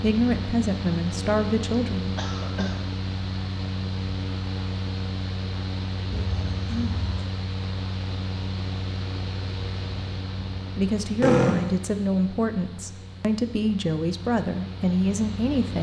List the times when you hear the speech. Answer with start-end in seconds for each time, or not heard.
0.0-2.7, 10.8-15.7.